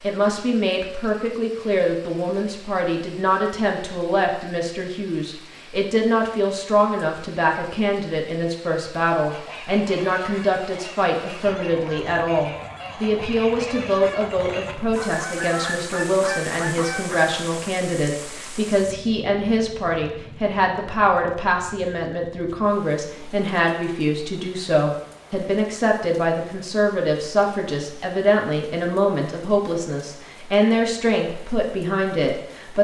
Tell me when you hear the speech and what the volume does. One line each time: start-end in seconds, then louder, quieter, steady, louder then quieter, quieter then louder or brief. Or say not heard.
0.0-32.7 steady.